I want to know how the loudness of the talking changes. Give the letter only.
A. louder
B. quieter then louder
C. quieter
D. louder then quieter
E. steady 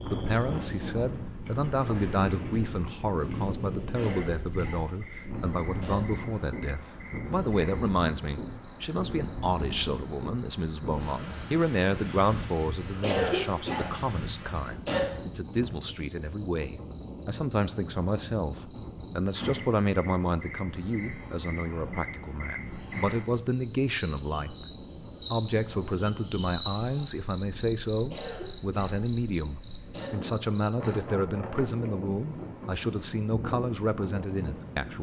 E.